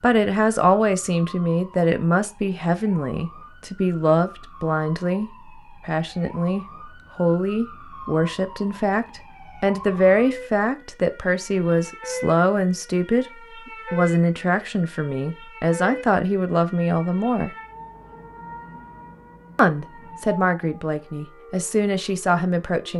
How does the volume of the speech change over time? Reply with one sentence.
The volume of the speech stays about the same.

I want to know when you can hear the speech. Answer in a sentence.
You can hear the speech from 0.0 to 17.5 s and from 19.6 to 22.9 s.